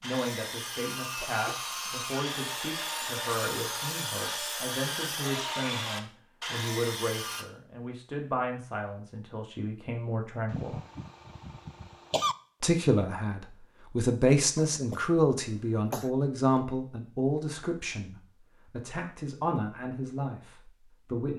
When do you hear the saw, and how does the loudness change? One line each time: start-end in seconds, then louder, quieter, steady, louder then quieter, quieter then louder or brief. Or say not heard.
0.0-7.5 steady.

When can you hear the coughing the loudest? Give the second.
12 s.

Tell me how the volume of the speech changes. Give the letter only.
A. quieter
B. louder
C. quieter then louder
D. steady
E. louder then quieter
E.